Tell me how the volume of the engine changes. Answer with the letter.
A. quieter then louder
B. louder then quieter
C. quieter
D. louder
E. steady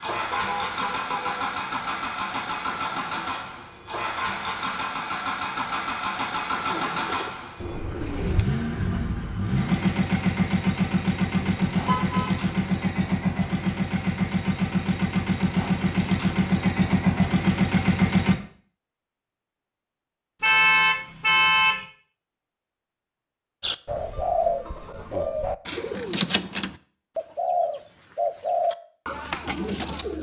D.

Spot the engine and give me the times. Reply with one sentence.
The engine can be heard from 0.0 to 18.4 s.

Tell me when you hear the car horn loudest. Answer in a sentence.
The loudest moment of the car horn is at 21 seconds.